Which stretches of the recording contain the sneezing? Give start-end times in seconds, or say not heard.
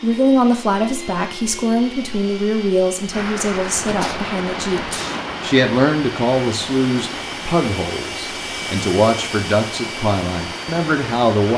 3.9-5.4.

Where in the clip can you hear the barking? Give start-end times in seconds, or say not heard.
not heard.